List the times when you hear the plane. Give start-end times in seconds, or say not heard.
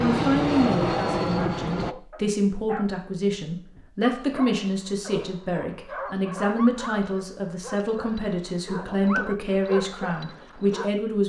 0.0-1.9.